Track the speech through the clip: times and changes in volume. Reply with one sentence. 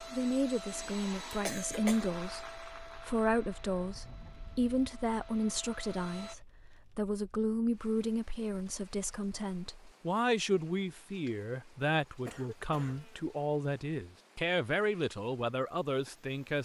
You can hear the speech from 0.0 to 16.6 s, at a steady volume.